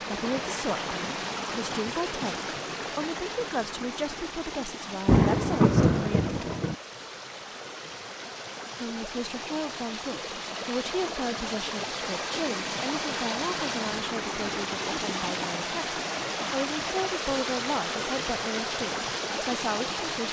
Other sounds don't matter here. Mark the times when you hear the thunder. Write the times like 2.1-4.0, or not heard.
5.0-6.8.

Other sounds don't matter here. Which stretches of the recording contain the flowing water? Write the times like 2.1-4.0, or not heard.
0.0-20.2.